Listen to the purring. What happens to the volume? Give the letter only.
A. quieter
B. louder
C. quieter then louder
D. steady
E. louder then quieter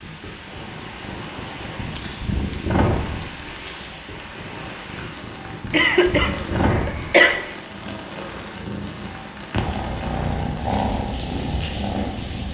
B.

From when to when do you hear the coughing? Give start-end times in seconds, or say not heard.
5.7-7.4.